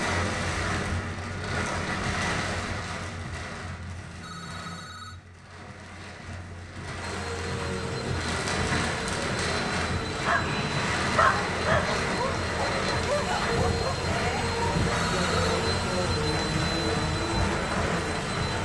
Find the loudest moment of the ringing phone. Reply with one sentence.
The volume of the ringing phone peaks at 15 seconds.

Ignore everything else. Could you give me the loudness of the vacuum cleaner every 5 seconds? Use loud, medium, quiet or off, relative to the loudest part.
off, medium, loud, loud.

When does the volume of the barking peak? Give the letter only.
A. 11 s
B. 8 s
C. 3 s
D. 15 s
A.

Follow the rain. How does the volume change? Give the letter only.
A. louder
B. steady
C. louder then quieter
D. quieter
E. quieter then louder
E.